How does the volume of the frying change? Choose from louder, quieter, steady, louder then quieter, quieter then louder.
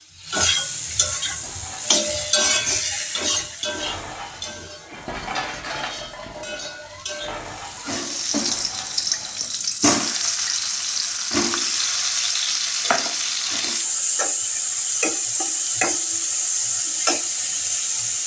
quieter then louder.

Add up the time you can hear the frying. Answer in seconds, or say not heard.
18 s.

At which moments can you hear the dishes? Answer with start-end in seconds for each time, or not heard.
1.2-9.6.